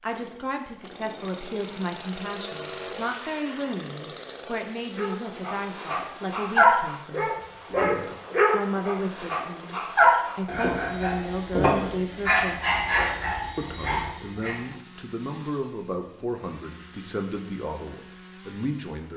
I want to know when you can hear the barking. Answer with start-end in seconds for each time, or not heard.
5.0-14.6.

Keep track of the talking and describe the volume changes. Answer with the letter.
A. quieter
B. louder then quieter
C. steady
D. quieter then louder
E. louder
C.